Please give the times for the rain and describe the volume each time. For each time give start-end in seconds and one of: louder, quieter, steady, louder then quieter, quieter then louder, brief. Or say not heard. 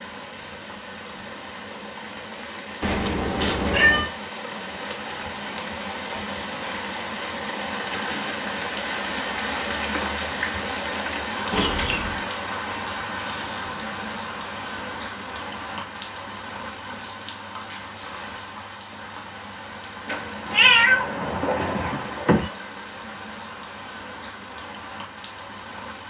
0.0-26.0 louder then quieter.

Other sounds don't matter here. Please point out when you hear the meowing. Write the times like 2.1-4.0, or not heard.
2.8-4.1, 11.5-12.2, 20.1-22.5.